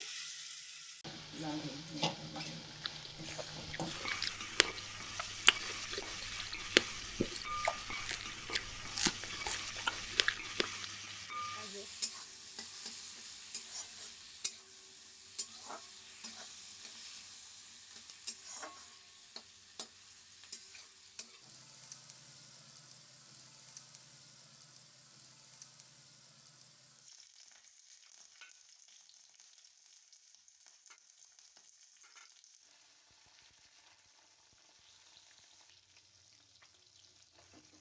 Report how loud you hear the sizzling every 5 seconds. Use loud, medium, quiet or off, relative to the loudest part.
loud, loud, loud, medium, quiet, quiet, quiet, quiet.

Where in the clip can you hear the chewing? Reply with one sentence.
The chewing can be heard from 2.8 to 10.8 s.